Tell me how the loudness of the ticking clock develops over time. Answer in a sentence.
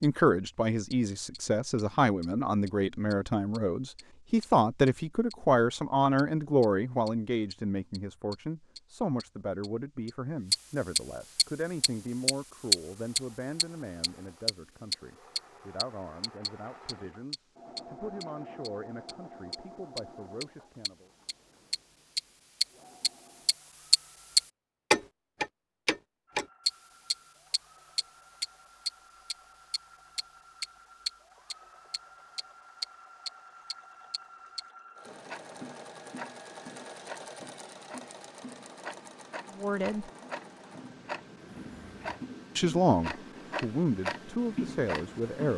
The volume of the ticking clock goes down, then up.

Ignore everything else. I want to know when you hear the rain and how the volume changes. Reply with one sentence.
The rain can't be heard in this clip.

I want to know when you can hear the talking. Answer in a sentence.
You can hear the talking from 0.0 to 21.1 s, from 39.6 to 40.0 s and from 42.5 to 45.5 s.